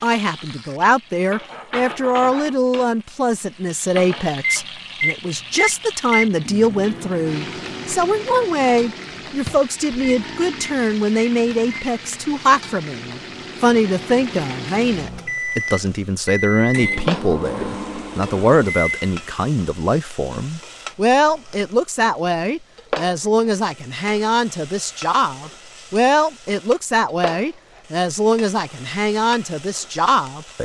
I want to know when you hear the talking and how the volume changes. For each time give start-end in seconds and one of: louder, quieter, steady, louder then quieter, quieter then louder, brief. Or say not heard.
0.0-30.5 steady.